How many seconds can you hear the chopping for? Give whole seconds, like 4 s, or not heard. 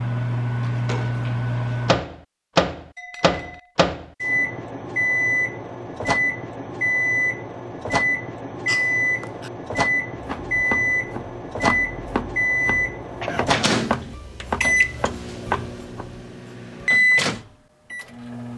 6 s.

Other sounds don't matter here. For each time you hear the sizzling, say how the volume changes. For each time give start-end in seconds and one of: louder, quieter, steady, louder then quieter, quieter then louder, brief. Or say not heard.
not heard.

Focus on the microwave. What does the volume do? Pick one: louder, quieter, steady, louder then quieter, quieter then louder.
steady.